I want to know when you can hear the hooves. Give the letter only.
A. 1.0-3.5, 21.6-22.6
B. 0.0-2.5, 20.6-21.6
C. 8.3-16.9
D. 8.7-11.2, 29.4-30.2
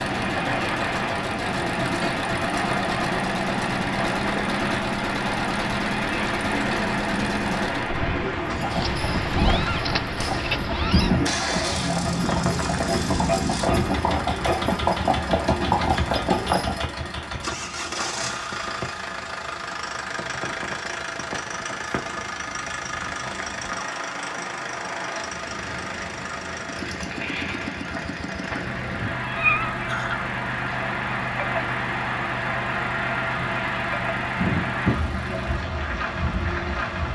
C.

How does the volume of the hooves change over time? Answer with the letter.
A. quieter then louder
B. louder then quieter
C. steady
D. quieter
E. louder
E.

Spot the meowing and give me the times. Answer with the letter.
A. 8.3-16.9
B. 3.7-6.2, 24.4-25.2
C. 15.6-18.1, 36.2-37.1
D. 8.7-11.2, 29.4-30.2
D.